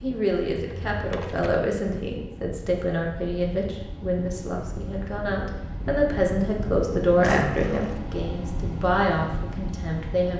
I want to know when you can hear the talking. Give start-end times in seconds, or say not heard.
0.0-10.3.